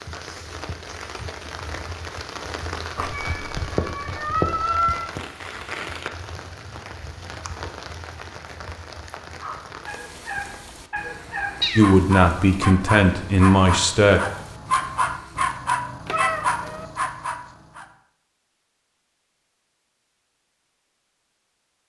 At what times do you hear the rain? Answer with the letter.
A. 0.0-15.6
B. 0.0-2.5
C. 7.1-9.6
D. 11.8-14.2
A.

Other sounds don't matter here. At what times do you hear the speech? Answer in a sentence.
The speech can be heard from 11.8 to 14.2 s.